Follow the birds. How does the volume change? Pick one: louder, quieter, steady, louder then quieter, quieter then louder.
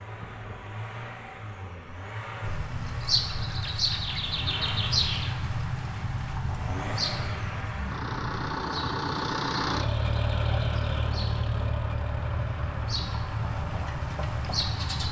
quieter then louder.